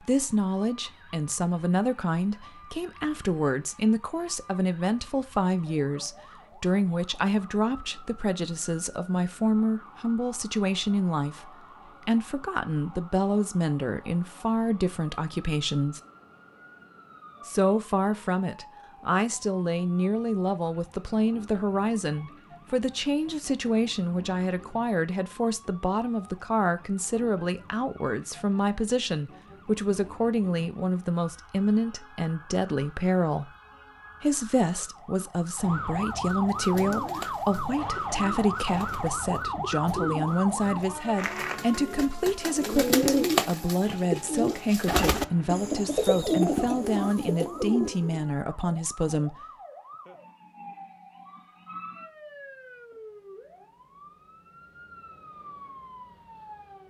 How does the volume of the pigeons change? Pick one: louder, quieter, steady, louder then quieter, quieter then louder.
louder.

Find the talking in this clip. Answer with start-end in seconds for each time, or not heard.
0.0-16.0, 17.4-33.5, 34.2-49.4.